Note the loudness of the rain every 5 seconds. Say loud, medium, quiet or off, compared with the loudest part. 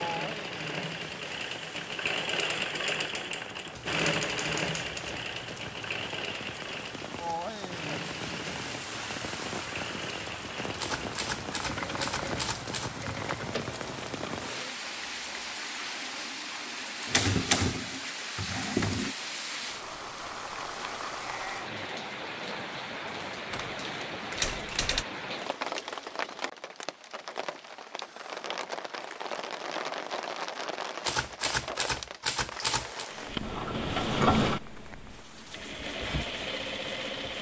medium, loud, loud, loud, loud, loud, loud, medium.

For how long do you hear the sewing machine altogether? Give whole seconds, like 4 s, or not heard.
19 s.